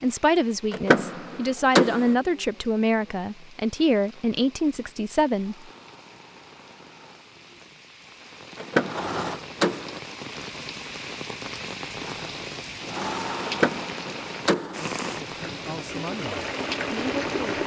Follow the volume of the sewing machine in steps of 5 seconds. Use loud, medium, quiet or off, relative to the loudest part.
off, medium, loud, loud.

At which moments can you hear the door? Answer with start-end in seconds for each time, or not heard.
0.7-2.1, 8.6-10.0, 13.4-14.8.